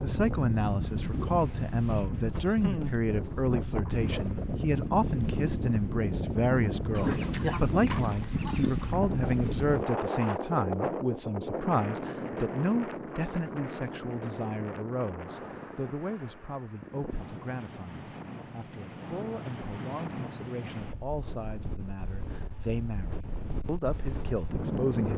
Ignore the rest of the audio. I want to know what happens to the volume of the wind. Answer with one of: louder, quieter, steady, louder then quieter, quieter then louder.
quieter.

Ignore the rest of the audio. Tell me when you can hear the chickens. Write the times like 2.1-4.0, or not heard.
6.9-9.0.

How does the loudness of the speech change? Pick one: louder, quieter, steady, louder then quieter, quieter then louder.
quieter.